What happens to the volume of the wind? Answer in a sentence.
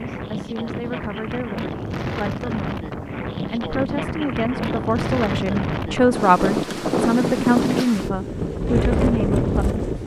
The volume of the wind goes up.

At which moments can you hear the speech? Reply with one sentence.
You can hear the speech from 0.0 to 10.0 s.